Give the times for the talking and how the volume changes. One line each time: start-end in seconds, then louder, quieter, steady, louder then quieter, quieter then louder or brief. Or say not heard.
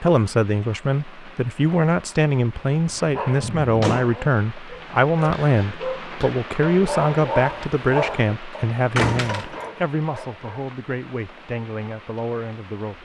0.0-13.0 quieter.